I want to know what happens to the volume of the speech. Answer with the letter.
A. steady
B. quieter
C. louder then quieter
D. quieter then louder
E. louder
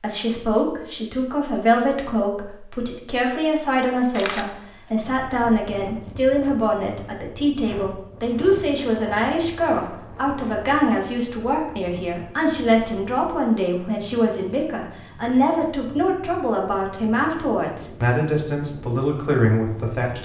A.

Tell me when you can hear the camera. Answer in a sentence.
The camera can be heard from 4.1 to 4.5 s.